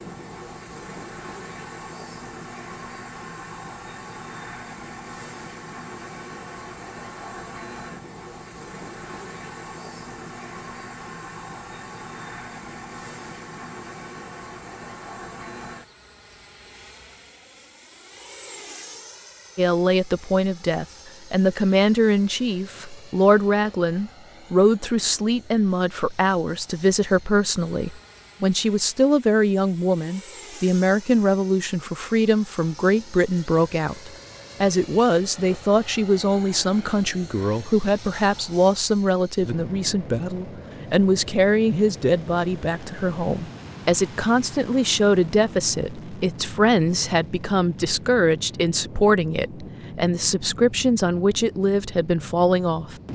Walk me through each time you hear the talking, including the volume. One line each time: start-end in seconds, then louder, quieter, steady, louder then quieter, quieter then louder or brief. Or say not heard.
19.6-53.0 steady.